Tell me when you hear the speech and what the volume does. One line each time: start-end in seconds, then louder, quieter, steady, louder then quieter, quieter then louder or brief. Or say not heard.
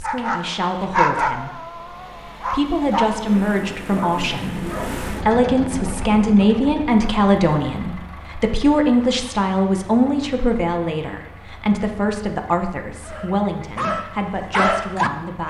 0.0-15.4 louder then quieter.